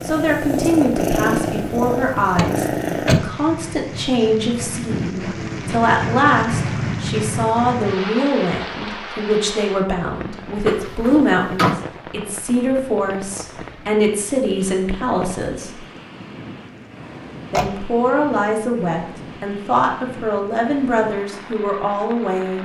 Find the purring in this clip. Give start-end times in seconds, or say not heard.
0.0-3.2.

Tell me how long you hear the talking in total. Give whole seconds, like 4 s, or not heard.
21 s.